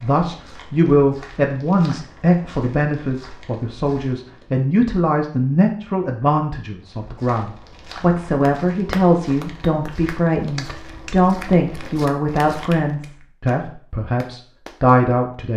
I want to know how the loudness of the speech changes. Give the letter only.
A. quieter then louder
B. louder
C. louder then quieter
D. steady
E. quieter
D.